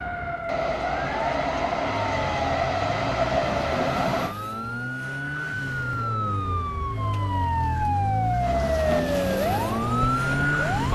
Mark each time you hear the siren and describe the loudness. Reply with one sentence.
You can hear the siren from 0.0 to 10.9 s, getting louder.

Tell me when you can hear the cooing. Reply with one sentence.
You can't hear the cooing here.